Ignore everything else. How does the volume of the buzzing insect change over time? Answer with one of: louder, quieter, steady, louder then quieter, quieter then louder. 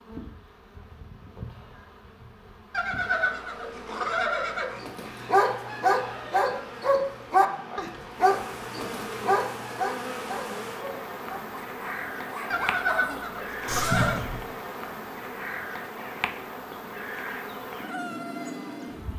louder.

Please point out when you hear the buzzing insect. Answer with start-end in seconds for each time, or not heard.
0.0-19.1.